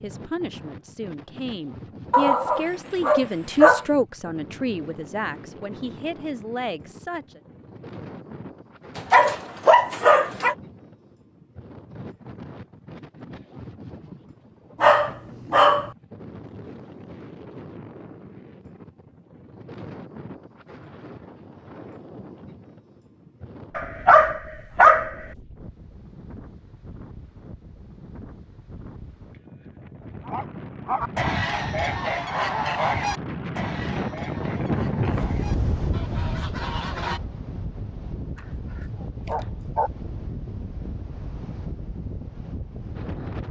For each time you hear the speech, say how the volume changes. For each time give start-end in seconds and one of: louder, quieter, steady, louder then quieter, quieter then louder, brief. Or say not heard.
0.0-7.4 louder then quieter.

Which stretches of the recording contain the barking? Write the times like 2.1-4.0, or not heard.
2.1-3.9, 8.9-10.6, 14.8-15.9, 23.8-25.1, 30.1-31.1, 38.4-39.9.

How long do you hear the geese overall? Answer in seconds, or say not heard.
6 s.